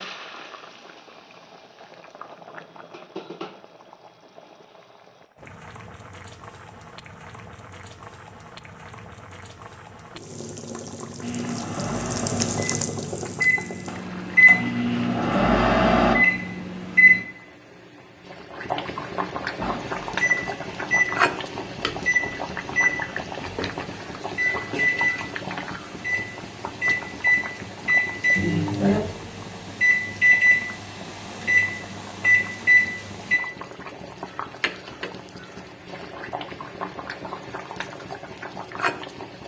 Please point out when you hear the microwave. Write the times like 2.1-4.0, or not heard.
11.2-17.2, 19.6-33.4.